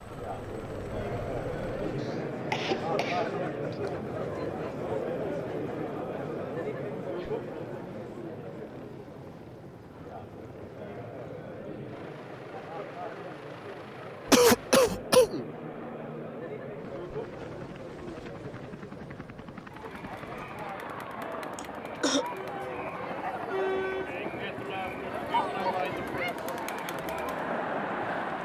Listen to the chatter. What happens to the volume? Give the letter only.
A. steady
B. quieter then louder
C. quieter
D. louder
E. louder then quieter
B.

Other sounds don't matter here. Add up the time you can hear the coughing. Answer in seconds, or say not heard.
4 s.